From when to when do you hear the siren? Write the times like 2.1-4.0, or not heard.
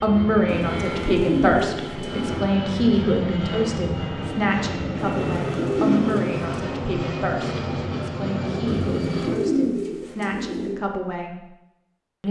not heard.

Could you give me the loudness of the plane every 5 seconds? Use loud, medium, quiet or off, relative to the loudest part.
loud, loud, off.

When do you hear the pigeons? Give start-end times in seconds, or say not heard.
0.5-2.5, 5.0-6.5, 8.7-10.8.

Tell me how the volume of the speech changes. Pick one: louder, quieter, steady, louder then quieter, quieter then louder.
quieter.